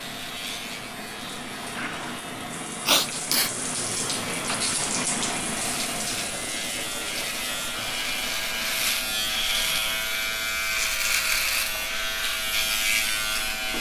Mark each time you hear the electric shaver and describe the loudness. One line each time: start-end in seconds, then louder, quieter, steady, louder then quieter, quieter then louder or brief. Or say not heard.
0.0-13.7 louder.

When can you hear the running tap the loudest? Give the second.
5 s.